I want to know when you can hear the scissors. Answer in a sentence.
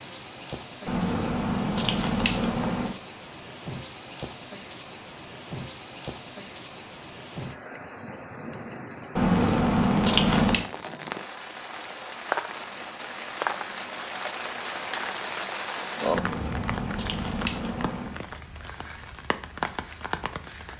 The scissors can be heard from 0.8 to 3.0 s, from 9.2 to 10.7 s and from 16.1 to 18.2 s.